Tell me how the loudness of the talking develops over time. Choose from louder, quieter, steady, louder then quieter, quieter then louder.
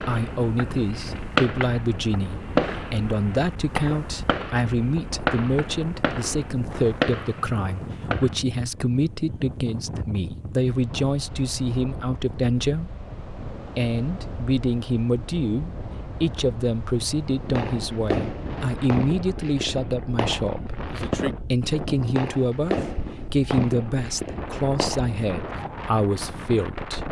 steady.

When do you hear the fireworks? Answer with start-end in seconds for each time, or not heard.
0.0-8.3, 17.3-25.6.